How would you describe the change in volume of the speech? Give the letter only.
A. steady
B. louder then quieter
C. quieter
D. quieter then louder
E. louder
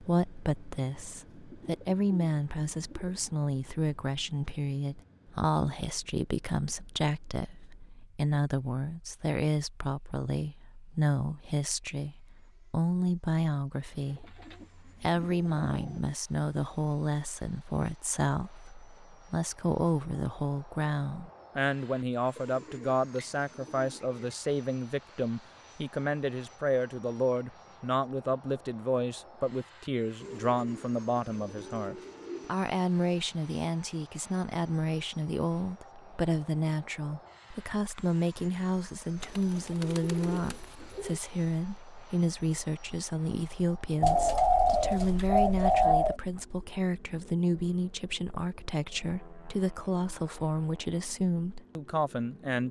A.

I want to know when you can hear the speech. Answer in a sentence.
The speech can be heard from 0.0 to 52.6 s.